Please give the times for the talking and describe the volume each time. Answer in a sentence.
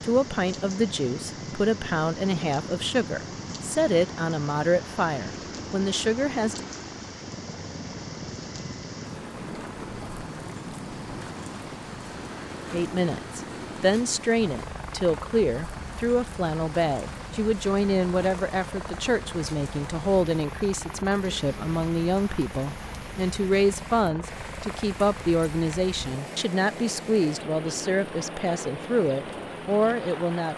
You can hear the talking from 0.0 to 6.7 s, at a steady volume; and from 12.7 to 30.5 s, at a steady volume.